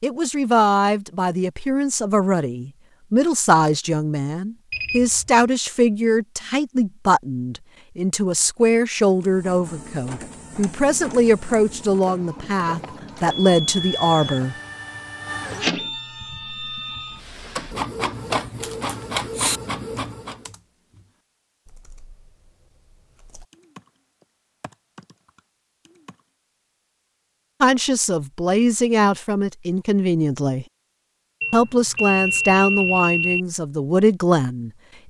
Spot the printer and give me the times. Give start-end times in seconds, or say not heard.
9.1-20.5.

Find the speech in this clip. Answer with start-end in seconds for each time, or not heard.
0.0-14.6, 27.6-30.6, 31.5-35.0.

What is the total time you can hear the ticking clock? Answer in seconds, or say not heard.
not heard.